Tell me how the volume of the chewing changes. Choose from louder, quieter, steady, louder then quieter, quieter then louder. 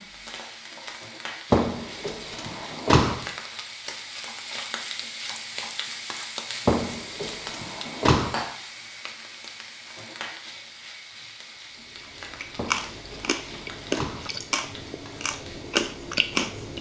quieter then louder.